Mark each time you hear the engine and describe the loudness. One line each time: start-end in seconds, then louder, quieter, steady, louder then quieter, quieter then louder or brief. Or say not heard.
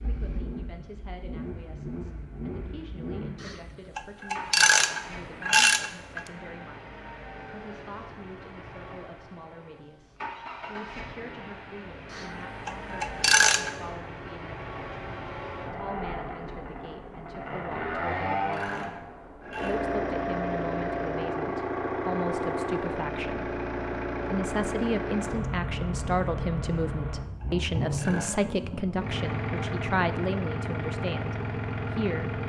0.0-32.4 louder.